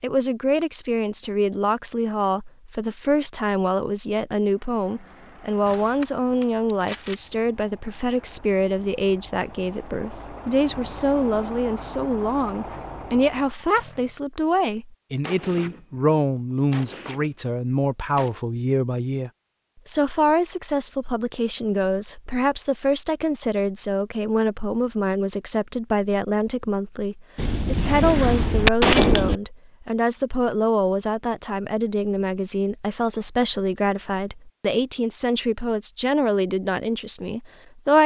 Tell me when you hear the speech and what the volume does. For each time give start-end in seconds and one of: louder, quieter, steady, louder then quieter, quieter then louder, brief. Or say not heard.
0.0-38.0 steady.